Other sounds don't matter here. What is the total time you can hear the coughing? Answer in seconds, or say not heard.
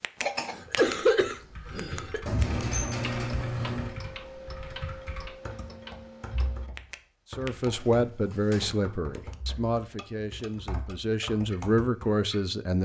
2 s.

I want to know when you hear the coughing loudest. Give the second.
1 s.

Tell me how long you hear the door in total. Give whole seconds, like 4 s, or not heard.
3 s.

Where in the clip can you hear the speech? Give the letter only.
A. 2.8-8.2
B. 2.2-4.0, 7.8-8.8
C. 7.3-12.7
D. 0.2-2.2
C.